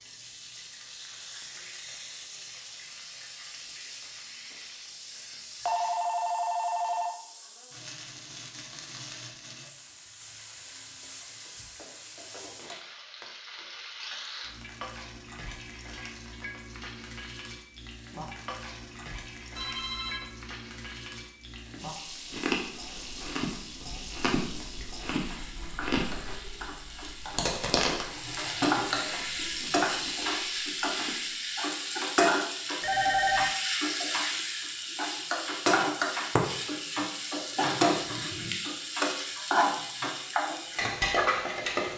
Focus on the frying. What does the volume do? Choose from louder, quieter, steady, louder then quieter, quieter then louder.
louder.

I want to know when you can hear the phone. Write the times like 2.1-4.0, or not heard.
5.7-7.2, 19.6-20.4, 32.8-33.5.